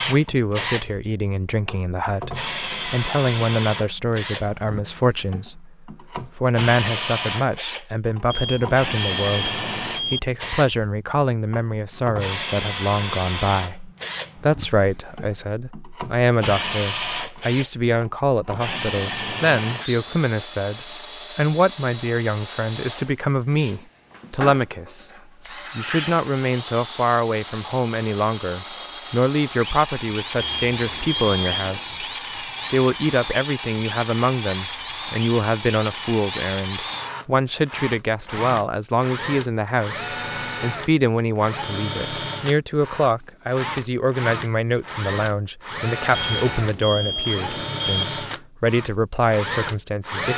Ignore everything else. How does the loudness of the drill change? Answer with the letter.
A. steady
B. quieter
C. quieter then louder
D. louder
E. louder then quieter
A.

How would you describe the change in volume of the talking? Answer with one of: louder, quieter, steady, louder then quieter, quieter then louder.
steady.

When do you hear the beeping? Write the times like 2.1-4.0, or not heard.
8.3-10.2, 30.4-31.9, 46.1-48.0.